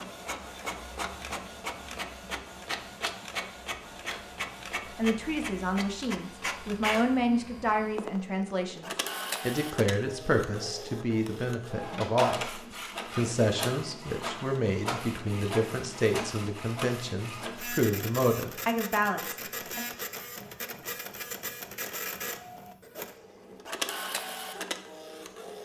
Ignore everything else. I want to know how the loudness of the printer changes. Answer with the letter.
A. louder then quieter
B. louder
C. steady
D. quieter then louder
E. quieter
C.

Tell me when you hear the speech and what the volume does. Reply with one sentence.
The speech can be heard from 5.0 to 19.9 s, at a steady volume.